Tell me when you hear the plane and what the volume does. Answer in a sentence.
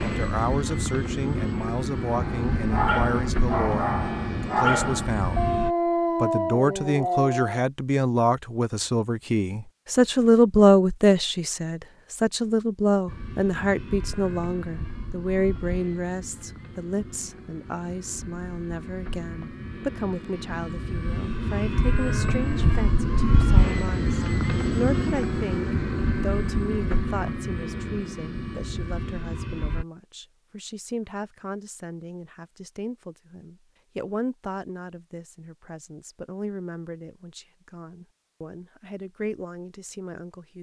You can hear the plane from 0.0 to 5.8 s, at a steady volume; and from 13.1 to 29.9 s, getting louder then quieter.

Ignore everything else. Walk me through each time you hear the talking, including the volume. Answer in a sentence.
The talking can be heard from 0.0 to 5.5 s, at a steady volume; and from 6.2 to 40.5 s, getting quieter.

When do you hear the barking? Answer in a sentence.
The barking can be heard from 2.0 to 7.7 s.